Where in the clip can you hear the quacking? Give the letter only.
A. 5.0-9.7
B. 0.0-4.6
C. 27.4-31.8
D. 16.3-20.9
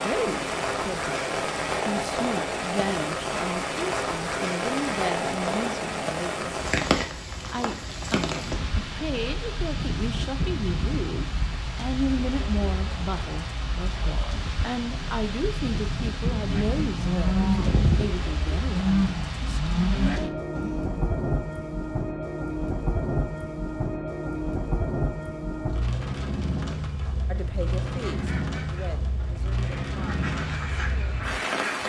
C.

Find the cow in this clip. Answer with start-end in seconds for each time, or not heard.
16.3-20.9.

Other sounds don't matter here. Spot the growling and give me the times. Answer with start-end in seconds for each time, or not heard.
not heard.